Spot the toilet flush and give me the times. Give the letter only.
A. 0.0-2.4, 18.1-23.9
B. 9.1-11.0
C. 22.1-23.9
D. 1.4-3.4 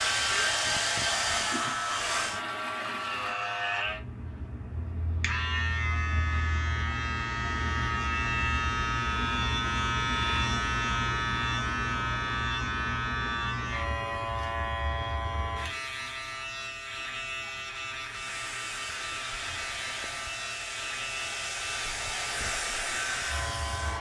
D.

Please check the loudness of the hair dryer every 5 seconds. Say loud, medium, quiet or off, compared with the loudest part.
loud, off, off, medium, medium.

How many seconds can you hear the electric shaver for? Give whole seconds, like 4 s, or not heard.
24 s.